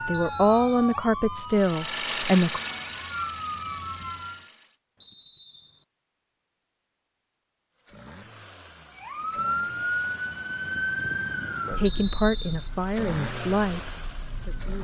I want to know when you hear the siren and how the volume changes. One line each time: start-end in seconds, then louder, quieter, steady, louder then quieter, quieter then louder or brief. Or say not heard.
0.0-4.5 quieter then louder
8.9-14.7 quieter.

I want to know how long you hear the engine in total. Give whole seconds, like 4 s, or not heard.
10 s.